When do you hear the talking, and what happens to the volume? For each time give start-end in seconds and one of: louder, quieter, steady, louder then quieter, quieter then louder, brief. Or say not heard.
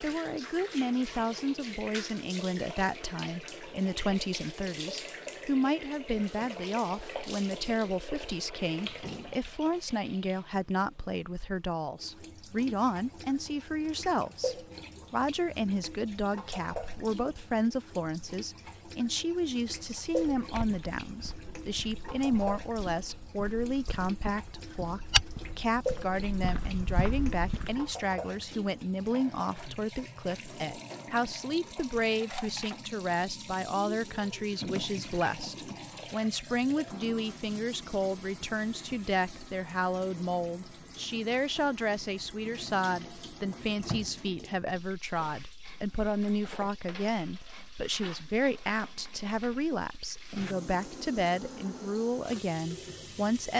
0.0-53.5 steady.